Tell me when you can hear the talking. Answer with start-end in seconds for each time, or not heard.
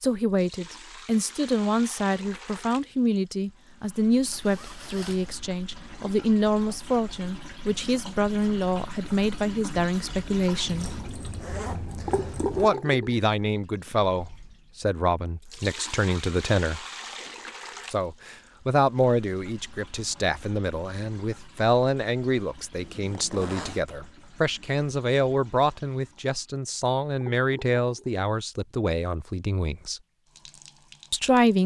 0.0-10.9, 12.5-16.9, 17.9-30.0, 31.1-31.6.